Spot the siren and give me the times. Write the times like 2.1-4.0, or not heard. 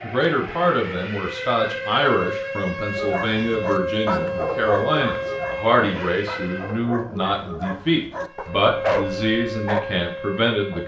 0.0-6.9, 8.2-10.8.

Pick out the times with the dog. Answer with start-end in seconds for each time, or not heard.
3.0-9.9.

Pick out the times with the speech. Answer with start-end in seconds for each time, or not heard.
0.0-10.8.